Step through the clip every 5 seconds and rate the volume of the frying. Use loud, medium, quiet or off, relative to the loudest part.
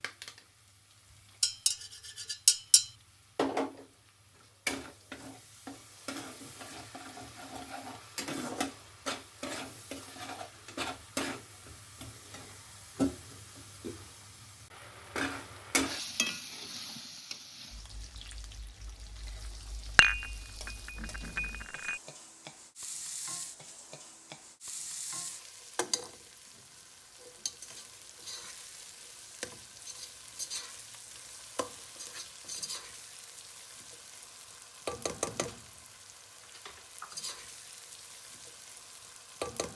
loud, loud, loud, loud, medium, medium, medium, loud.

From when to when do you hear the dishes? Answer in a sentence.
The dishes can be heard from 1.4 to 2.9 s and from 19.9 to 22.0 s.